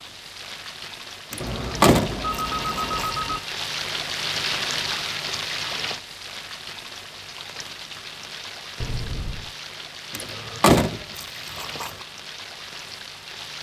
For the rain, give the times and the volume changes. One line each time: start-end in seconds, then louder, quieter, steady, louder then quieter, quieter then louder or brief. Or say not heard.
0.0-13.5 louder then quieter.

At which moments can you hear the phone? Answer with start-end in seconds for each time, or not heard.
1.4-3.4, 8.8-9.5.